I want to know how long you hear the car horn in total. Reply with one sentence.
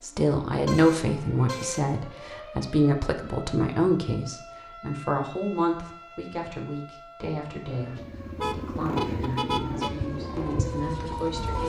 You can hear the car horn for 3 seconds altogether.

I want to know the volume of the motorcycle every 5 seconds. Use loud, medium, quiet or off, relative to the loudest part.
off, loud, loud.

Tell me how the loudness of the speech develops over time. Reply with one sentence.
The volume of the speech goes down.